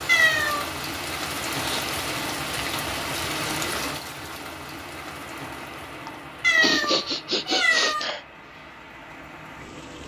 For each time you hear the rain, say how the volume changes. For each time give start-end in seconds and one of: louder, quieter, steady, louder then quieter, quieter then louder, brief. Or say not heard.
0.0-10.0 quieter.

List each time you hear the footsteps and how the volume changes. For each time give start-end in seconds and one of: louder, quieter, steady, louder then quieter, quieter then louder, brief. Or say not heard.
not heard.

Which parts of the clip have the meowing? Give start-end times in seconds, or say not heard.
0.1-0.7, 6.4-8.1.